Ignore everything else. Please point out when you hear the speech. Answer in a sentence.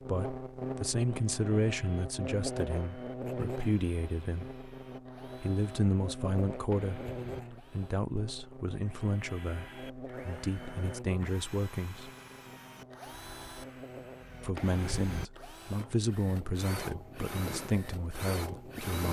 The speech can be heard from 0.1 to 4.5 s, from 5.4 to 12.1 s and from 14.4 to 19.0 s.